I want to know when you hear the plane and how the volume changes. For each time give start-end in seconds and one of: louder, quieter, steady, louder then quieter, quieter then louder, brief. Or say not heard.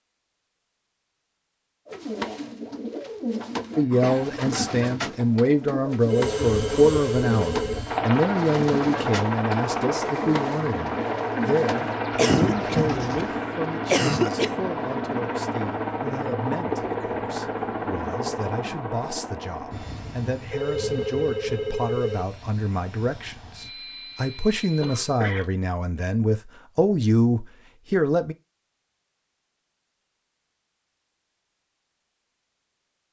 6.0-25.2 quieter.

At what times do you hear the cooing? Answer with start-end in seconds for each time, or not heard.
1.9-13.3.